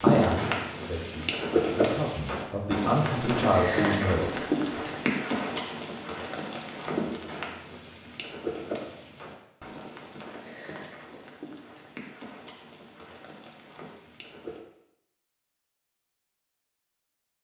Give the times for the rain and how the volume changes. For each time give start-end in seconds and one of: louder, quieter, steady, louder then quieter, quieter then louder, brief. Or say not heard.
0.0-14.6 quieter.